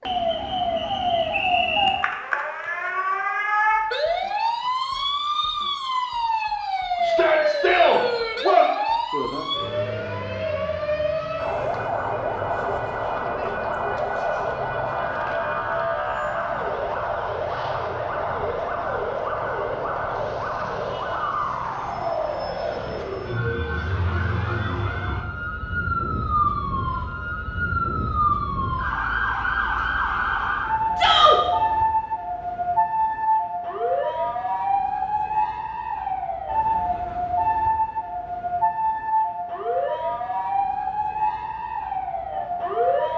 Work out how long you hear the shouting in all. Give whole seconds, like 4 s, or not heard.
2 s.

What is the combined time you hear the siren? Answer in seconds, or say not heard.
43 s.